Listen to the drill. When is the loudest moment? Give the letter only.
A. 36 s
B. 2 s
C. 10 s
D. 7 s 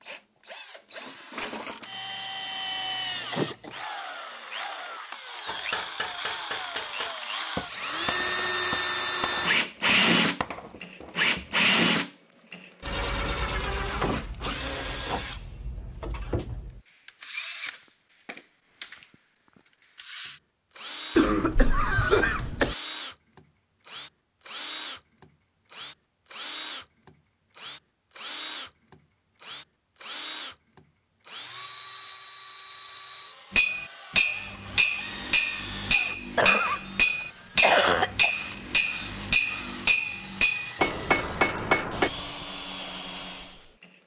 C.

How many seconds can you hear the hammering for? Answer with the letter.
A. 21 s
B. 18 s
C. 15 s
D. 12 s
C.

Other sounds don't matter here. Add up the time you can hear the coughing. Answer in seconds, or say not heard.
3 s.